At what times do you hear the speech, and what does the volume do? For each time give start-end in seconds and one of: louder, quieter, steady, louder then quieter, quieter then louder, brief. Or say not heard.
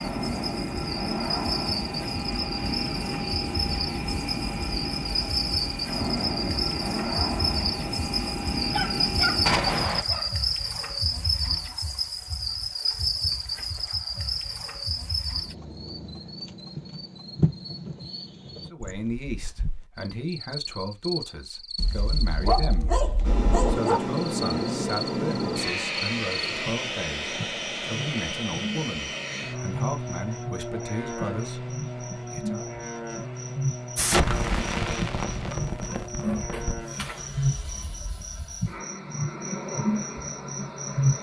18.7-32.6 steady.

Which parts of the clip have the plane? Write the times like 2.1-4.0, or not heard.
0.0-9.8, 23.2-41.1.